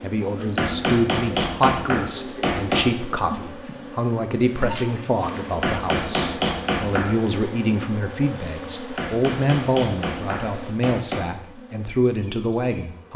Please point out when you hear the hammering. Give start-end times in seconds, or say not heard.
0.5-2.9, 5.5-7.0, 8.9-11.2.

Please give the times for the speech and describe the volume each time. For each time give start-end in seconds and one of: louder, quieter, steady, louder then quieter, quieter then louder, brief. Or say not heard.
0.0-13.1 steady.